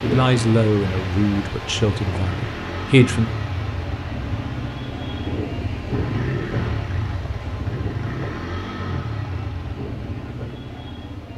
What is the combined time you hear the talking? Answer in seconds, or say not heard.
3 s.